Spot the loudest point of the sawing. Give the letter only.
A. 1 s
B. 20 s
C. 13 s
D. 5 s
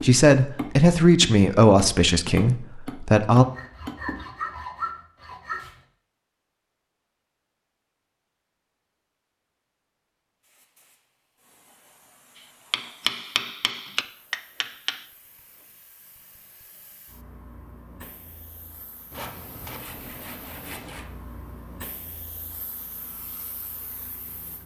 D.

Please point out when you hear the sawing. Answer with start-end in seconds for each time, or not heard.
3.4-5.8, 19.1-21.1.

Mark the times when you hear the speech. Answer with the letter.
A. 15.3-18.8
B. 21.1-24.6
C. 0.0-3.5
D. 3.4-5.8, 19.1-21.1
C.